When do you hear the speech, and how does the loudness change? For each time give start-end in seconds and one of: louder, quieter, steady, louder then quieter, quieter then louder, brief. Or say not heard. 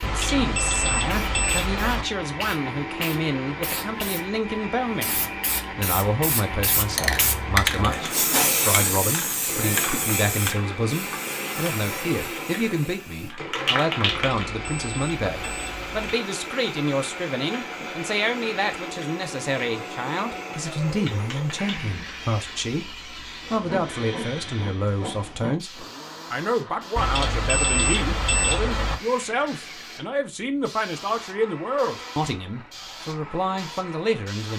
0.0-34.5 steady.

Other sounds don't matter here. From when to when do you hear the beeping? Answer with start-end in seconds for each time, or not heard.
0.0-2.0, 14.2-16.1, 26.9-28.9.